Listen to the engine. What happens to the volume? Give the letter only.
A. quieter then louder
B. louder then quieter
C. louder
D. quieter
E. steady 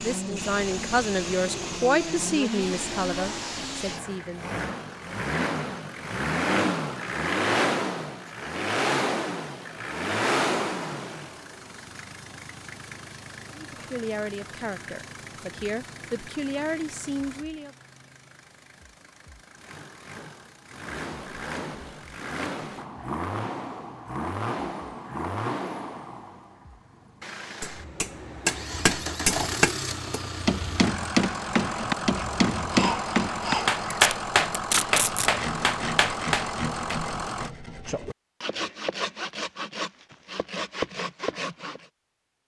A.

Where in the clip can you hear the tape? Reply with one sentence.
You can hear the tape from 33.9 to 35.3 s.